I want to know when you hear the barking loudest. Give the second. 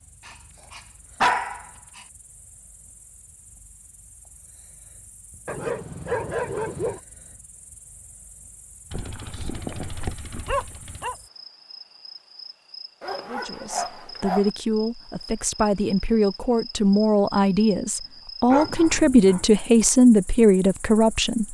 1 s.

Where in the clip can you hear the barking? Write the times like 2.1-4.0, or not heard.
0.2-2.0, 5.5-7.0, 8.9-11.2, 13.0-14.5, 18.5-19.4.